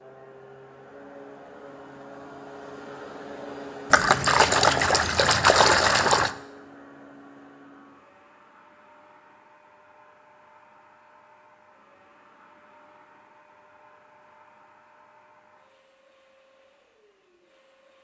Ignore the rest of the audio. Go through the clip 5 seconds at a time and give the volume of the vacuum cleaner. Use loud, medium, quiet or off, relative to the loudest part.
loud, medium, quiet, quiet.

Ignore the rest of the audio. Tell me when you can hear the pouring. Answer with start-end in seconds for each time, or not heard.
3.9-6.3.